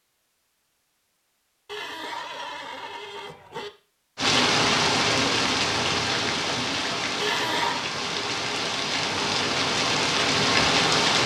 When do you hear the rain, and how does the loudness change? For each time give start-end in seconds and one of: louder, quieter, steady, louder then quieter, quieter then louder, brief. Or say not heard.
4.2-11.2 quieter then louder.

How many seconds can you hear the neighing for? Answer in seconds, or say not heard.
3 s.